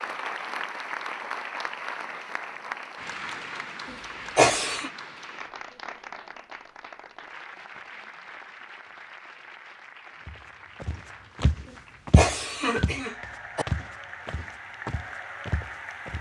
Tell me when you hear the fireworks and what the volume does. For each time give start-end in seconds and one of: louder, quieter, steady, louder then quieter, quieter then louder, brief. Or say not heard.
not heard.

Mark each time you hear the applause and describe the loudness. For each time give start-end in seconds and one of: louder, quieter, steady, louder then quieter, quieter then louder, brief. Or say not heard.
0.0-16.1 quieter then louder.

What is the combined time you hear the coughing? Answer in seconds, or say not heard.
3 s.